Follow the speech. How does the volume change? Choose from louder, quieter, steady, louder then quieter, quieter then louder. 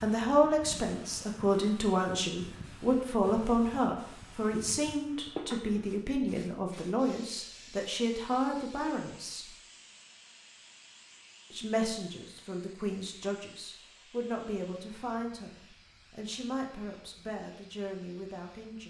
quieter.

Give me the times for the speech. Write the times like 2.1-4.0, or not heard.
0.0-9.5, 11.5-18.8.